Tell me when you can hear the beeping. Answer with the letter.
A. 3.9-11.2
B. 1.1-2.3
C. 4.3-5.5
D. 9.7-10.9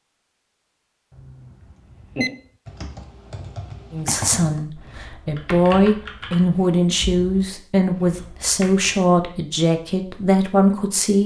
B.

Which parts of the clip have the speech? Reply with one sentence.
You can hear the speech from 3.9 to 11.2 s.